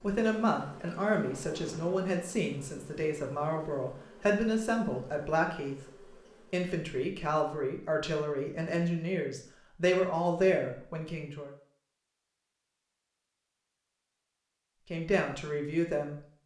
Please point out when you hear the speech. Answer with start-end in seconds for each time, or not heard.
0.0-5.8, 6.5-11.5, 14.9-16.2.